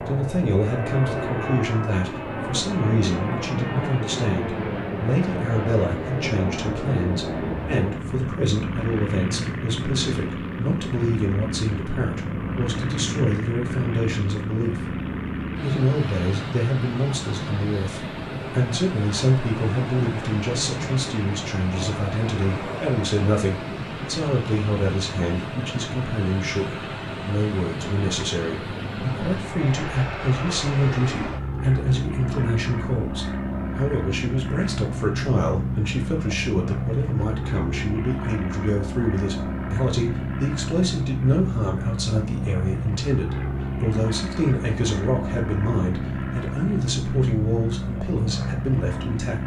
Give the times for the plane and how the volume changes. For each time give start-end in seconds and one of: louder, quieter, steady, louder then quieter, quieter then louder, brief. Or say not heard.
0.0-49.4 steady.